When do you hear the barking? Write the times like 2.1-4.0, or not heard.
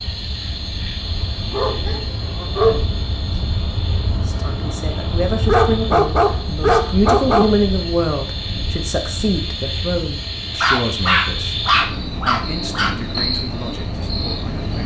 1.5-2.8, 5.5-7.5, 10.6-12.9.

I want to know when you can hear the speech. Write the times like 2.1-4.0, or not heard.
4.2-14.8.